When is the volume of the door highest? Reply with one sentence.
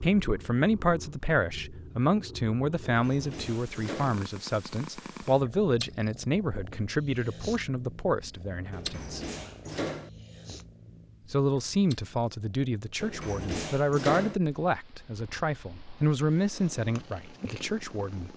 The loudest moment of the door is at 14 seconds.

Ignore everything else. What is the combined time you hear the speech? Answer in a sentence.
The speech can be heard for 16 seconds in total.